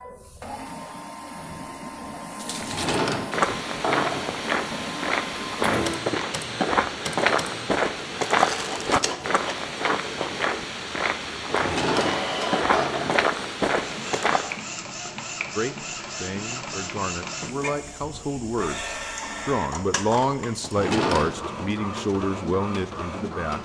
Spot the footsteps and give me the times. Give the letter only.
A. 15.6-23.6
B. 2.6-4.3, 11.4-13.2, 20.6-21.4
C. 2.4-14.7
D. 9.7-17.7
C.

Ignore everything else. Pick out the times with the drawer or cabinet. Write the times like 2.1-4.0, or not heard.
2.6-4.3, 11.4-13.2, 20.6-21.4.